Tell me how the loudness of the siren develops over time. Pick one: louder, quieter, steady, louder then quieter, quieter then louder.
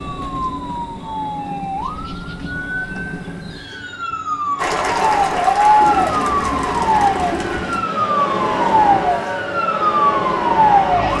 louder.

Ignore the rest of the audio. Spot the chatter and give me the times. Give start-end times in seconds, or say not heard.
4.5-11.1.